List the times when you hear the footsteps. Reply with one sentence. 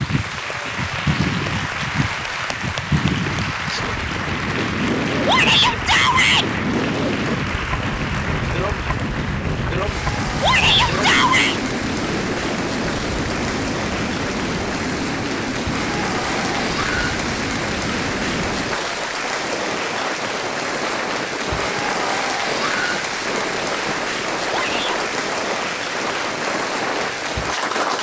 The footsteps can't be heard in this clip.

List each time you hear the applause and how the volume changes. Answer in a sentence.
You can hear the applause from 0.0 to 27.9 s, at a steady volume.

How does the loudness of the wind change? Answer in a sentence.
The loudness of the wind stays about the same.